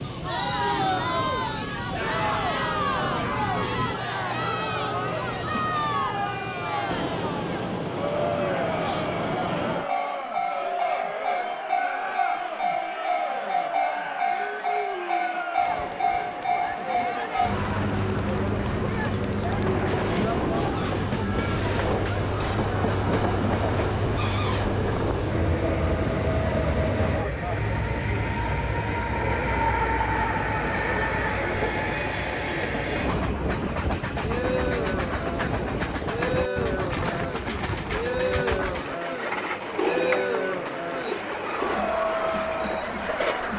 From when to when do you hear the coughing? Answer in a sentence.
The coughing can't be heard in this clip.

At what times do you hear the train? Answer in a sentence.
The train can be heard from 0.0 to 43.5 s.